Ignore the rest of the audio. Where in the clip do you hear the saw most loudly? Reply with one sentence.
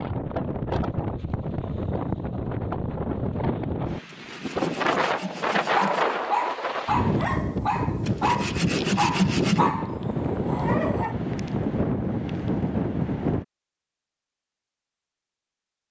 The volume of the saw peaks at 9 seconds.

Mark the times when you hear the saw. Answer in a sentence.
The saw can be heard from 4.0 to 6.2 s and from 8.0 to 9.6 s.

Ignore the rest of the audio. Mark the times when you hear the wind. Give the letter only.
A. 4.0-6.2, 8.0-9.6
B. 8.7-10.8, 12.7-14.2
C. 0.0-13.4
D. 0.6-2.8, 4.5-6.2
C.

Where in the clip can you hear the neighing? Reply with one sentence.
The neighing can't be heard in this clip.